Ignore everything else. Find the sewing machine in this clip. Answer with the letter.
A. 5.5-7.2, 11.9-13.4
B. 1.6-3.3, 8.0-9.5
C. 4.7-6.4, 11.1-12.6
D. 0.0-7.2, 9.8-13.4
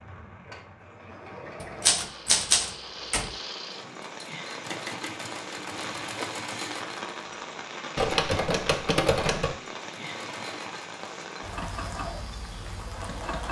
D.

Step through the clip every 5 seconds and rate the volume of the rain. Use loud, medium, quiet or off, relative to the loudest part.
medium, loud, loud.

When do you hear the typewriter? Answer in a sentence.
The typewriter can be heard from 1.6 to 3.3 s and from 8.0 to 9.5 s.